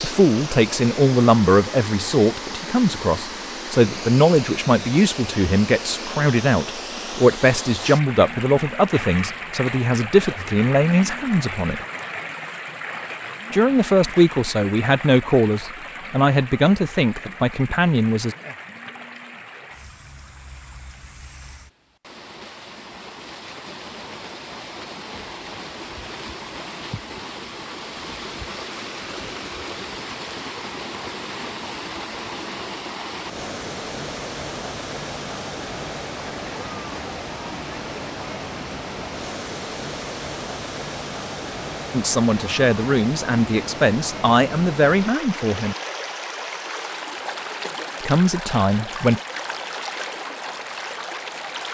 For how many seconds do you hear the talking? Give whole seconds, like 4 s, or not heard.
22 s.